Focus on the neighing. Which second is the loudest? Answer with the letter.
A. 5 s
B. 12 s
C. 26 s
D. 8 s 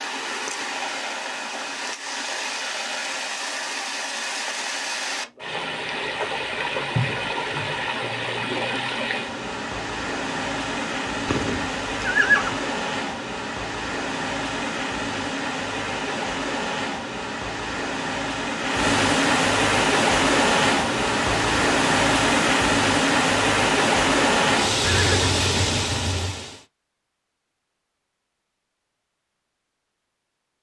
B.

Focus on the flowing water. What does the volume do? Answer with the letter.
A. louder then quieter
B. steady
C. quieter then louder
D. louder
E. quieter
D.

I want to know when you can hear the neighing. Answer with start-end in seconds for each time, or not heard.
7.0-7.9, 11.2-12.6, 24.8-26.4.